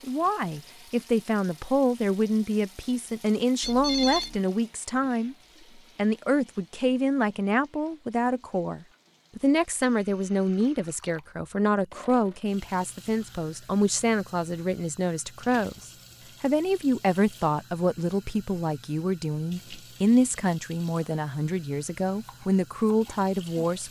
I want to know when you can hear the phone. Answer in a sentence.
The phone can be heard from 3.6 to 4.4 s.